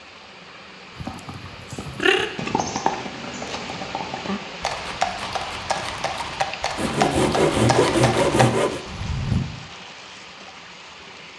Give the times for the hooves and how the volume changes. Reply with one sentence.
The hooves can be heard from 1.0 to 9.4 s, getting quieter then louder.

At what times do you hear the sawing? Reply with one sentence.
You can hear the sawing from 6.8 to 8.8 s.